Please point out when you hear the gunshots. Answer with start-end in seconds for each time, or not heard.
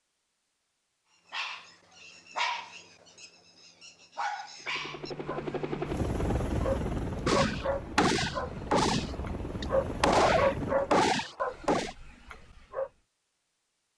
7.2-11.9.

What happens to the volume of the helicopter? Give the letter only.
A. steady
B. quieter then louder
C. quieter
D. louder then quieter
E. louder
B.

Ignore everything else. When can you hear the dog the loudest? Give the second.
11 s.